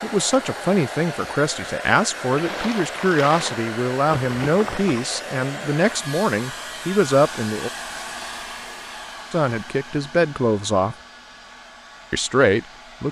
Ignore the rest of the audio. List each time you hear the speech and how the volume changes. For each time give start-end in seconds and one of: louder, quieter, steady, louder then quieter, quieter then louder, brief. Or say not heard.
0.0-7.7 steady
9.3-10.9 brief
12.1-13.0 brief.